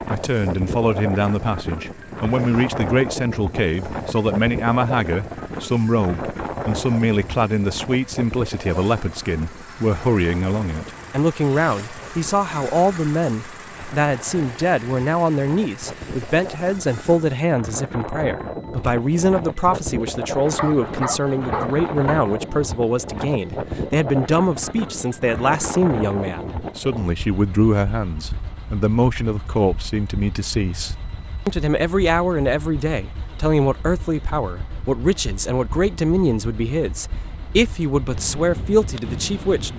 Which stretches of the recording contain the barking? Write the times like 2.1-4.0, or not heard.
20.4-22.1.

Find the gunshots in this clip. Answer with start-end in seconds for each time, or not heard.
not heard.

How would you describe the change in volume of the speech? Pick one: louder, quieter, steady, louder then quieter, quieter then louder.
steady.